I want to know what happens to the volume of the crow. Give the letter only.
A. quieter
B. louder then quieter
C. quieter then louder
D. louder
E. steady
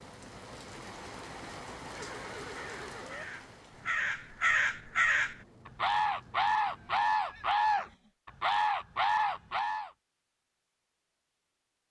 D.